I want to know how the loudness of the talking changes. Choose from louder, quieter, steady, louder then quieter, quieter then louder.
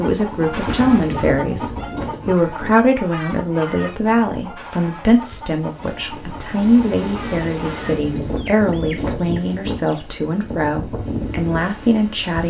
steady.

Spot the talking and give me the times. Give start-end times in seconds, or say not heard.
0.0-12.4.